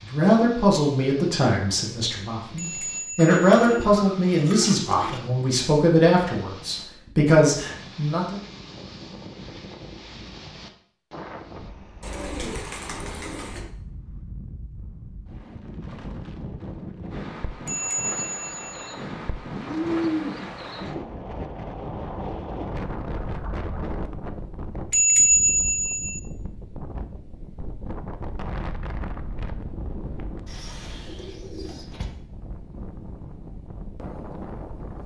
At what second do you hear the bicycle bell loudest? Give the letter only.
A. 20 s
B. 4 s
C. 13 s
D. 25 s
D.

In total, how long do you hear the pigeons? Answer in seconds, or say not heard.
7 s.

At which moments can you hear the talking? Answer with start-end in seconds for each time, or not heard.
0.0-8.4.